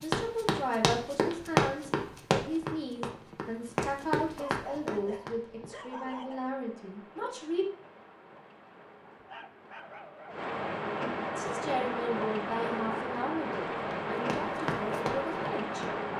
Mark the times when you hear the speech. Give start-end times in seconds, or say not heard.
0.0-7.7, 11.3-15.8.